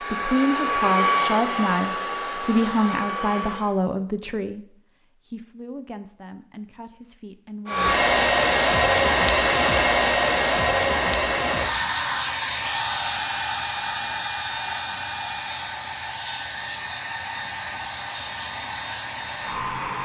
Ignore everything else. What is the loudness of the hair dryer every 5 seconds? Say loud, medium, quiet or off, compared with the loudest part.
medium, loud, medium, quiet.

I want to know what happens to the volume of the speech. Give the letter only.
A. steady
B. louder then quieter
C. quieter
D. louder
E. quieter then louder
C.